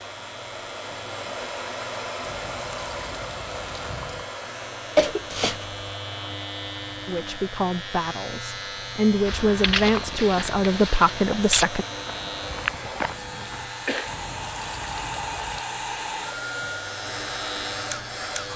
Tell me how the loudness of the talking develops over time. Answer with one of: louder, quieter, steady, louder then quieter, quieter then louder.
louder.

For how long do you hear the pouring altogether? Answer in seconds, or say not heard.
4 s.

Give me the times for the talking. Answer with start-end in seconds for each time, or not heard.
7.0-11.8.